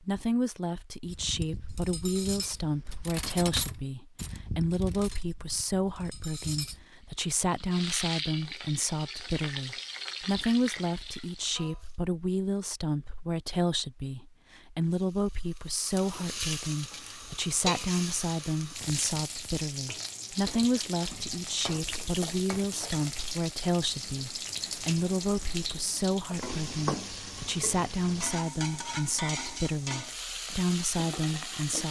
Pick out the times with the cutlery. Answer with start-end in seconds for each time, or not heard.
1.1-6.8.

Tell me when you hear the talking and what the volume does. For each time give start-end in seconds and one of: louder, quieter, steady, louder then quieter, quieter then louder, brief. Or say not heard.
0.0-31.8 steady.